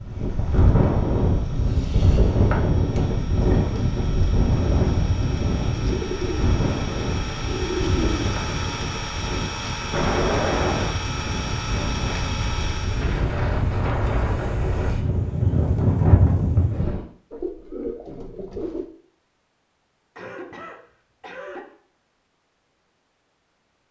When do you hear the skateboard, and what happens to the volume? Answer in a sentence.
You can't hear the skateboard here.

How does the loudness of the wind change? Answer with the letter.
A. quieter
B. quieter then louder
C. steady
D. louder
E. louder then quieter
B.